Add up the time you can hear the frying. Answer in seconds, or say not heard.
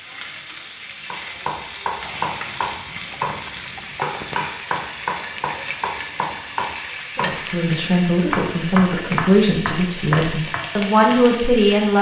12 s.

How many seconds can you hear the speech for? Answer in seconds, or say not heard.
5 s.